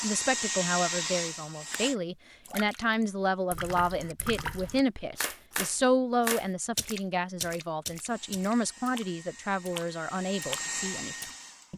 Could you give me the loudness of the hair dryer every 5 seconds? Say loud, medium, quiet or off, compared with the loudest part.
loud, quiet, medium.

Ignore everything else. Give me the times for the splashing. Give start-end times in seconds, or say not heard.
1.7-11.3.